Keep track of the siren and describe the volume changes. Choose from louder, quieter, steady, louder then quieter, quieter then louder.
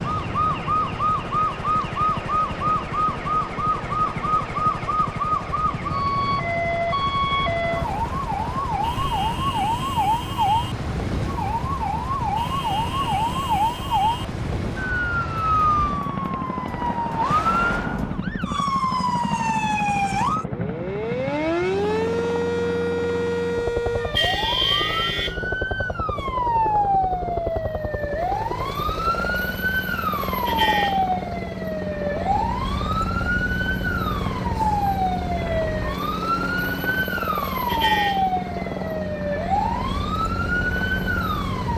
steady.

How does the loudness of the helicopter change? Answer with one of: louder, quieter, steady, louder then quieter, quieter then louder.
steady.